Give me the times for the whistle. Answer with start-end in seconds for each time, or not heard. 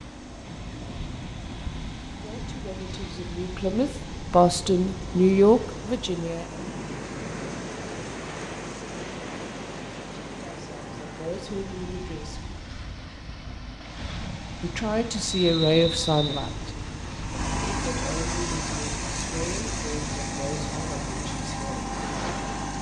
15.2-16.6.